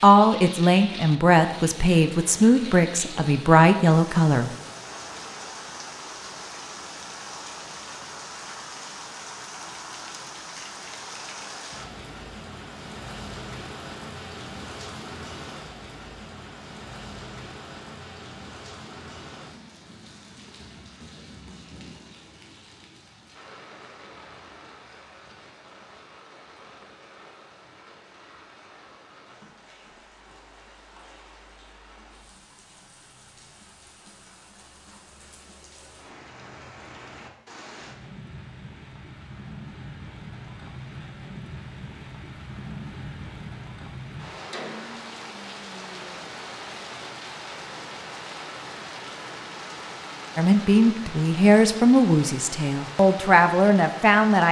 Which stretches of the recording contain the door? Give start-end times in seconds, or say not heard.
not heard.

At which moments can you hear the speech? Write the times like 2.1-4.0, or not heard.
0.0-4.5, 50.4-54.4.